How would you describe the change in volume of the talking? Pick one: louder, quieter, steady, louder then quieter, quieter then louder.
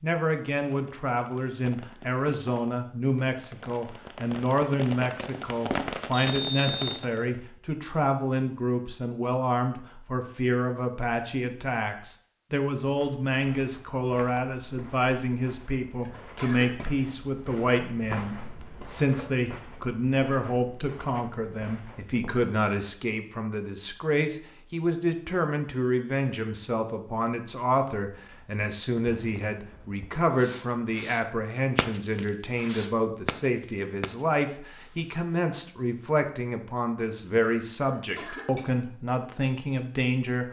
steady.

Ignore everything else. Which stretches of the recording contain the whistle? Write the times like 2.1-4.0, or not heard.
6.1-7.0.